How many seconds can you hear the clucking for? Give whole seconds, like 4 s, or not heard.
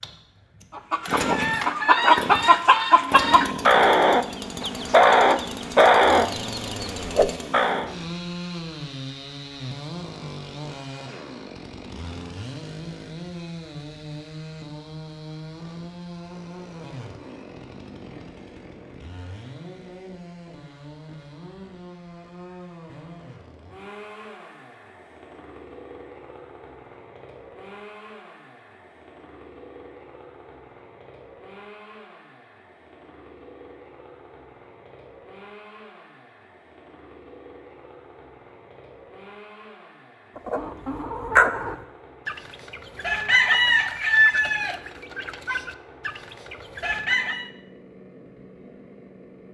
14 s.